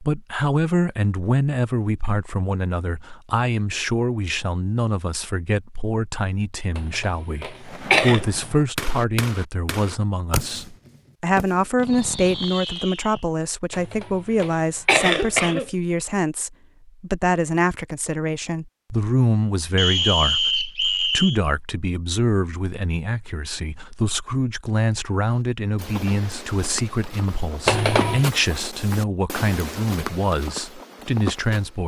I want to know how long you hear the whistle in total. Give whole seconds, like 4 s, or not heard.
2 s.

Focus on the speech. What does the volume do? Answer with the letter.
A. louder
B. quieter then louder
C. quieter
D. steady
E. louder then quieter
D.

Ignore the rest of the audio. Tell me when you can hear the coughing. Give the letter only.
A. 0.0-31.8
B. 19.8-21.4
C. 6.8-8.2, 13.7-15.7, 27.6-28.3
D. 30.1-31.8
C.